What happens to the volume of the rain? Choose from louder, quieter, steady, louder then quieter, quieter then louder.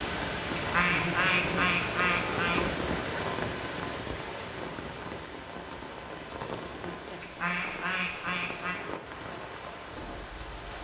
quieter.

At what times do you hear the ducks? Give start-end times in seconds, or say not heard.
0.6-2.6, 7.2-8.8.